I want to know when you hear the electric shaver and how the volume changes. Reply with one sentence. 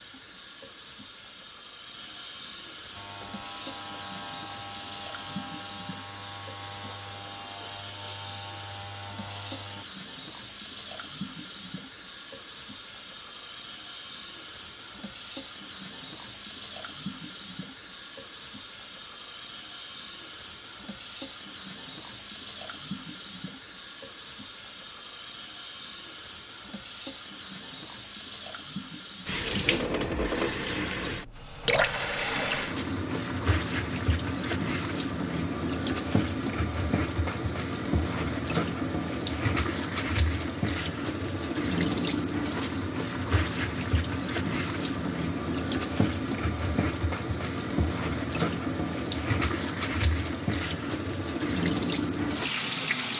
The electric shaver can be heard from 3.0 to 9.8 s, at a steady volume.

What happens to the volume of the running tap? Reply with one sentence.
The loudness of the running tap goes up.